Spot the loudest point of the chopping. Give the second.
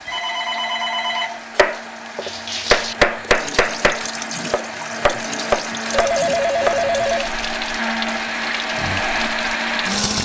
3 s.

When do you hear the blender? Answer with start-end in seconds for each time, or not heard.
0.0-10.2.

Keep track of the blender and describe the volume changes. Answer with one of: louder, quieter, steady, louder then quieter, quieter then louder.
louder.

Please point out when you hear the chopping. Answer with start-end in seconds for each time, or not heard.
1.6-6.8.